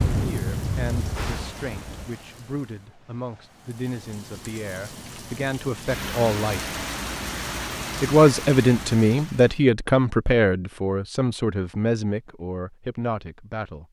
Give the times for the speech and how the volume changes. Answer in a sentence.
The speech can be heard from 0.1 to 6.6 s, getting louder; and from 8.0 to 13.8 s, getting quieter.